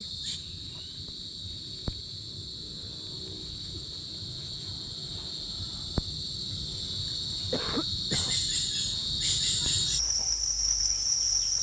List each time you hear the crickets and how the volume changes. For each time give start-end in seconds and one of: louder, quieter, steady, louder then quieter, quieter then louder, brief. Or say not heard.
0.0-11.5 louder.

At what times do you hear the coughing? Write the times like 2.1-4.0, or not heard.
7.5-8.3.